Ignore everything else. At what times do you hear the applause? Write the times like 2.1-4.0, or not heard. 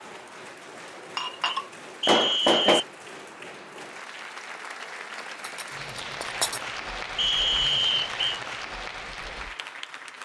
0.0-10.2.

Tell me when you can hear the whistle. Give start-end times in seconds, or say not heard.
2.0-2.9, 7.2-8.4.